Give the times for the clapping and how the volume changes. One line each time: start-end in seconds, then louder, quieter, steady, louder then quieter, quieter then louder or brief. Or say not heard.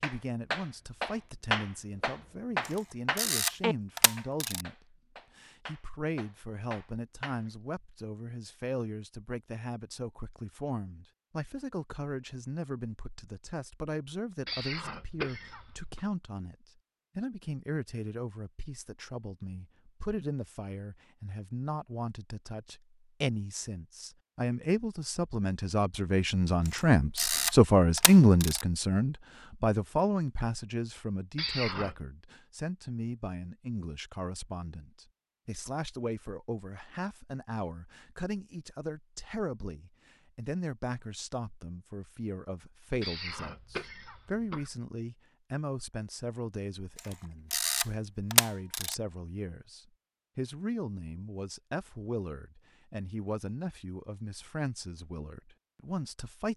0.0-7.5 quieter.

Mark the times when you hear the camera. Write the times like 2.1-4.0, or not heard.
2.6-4.7, 26.6-28.6, 47.0-49.0.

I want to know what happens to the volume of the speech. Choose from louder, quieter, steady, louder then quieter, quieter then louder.
louder then quieter.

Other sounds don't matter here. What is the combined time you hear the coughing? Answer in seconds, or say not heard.
4 s.